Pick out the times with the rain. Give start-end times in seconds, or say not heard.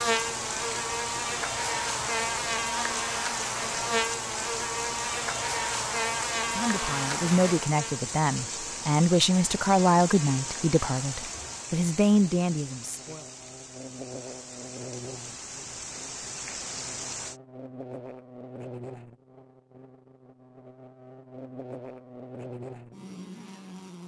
0.0-17.4.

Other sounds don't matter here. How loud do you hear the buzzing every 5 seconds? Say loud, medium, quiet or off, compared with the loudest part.
loud, loud, quiet, quiet, quiet.